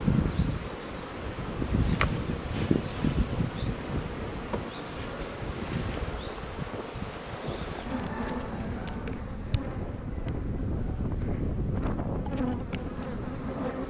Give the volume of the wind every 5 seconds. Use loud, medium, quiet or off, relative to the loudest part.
medium, medium, loud.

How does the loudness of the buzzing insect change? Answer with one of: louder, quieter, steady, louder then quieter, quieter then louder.
quieter.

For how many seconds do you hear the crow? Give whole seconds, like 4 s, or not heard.
not heard.